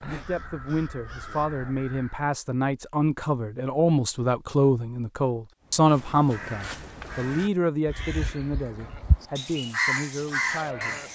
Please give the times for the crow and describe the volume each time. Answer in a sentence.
The crow can be heard briefly from 0.0 to 2.3 s; and from 5.6 to 11.1 s, getting louder.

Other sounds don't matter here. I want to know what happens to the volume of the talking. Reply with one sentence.
The loudness of the talking goes up, then down.